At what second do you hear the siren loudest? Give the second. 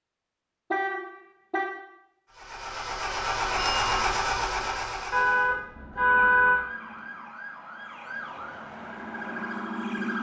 10 s.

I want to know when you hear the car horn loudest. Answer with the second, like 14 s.
6 s.